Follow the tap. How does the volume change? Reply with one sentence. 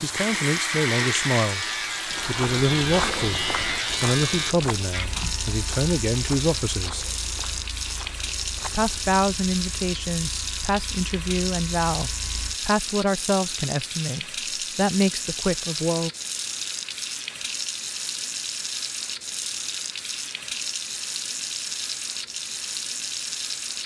The loudness of the tap stays about the same.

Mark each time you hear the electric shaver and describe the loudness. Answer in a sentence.
The electric shaver can be heard from 0.0 to 12.6 s, getting quieter.